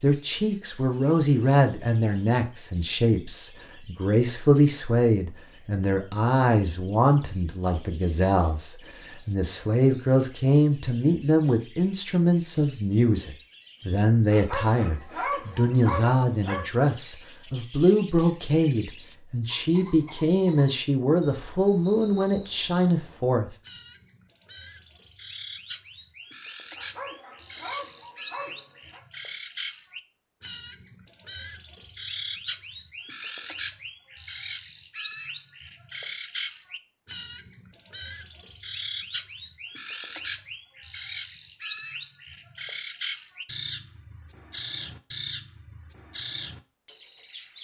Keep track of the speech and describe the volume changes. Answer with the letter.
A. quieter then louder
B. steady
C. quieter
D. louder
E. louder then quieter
B.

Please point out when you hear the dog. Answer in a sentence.
You can hear the dog from 14.3 to 16.7 s and from 26.8 to 29.0 s.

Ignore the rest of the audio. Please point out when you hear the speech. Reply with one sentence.
The speech can be heard from 0.0 to 23.6 s.